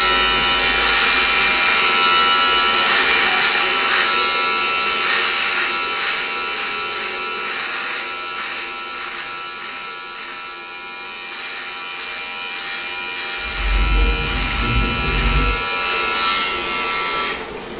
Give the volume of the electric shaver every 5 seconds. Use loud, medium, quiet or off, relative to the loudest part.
loud, medium, medium, medium.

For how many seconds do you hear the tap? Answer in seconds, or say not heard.
4 s.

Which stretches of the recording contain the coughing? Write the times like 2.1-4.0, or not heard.
not heard.